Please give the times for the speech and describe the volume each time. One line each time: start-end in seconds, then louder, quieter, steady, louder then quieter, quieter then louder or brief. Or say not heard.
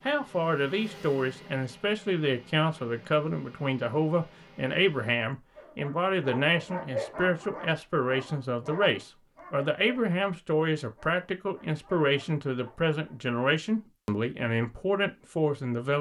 0.1-15.9 steady.